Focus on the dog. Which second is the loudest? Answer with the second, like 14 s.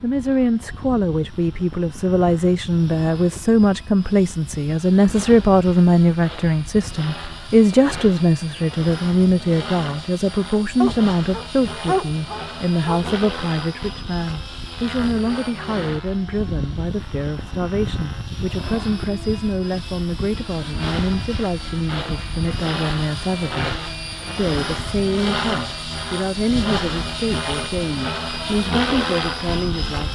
12 s.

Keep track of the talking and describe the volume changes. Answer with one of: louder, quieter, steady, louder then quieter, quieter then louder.
quieter.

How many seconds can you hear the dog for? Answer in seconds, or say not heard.
2 s.